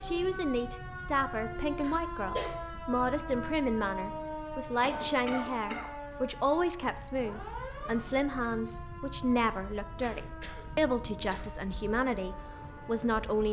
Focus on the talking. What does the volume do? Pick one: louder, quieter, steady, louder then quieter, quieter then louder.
steady.